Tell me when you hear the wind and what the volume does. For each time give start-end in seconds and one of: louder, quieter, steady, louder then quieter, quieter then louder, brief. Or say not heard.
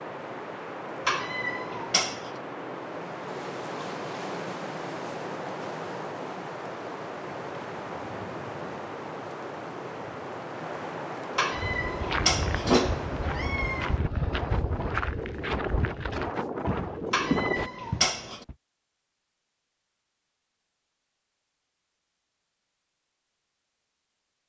0.0-17.7 steady.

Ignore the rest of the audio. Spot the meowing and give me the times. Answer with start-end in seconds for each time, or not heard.
1.1-2.3, 11.3-13.9, 17.1-18.4.